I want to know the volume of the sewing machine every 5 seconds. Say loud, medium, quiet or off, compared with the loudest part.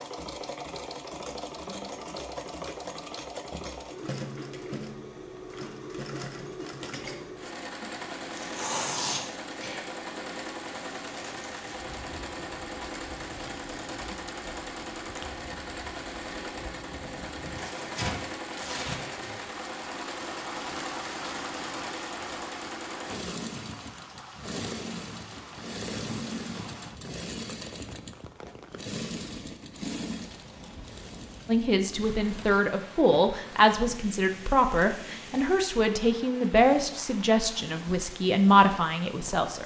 loud, loud, loud, loud, loud, loud, medium, medium.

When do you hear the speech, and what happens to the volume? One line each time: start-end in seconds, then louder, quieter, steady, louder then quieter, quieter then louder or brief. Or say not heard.
31.4-39.6 steady.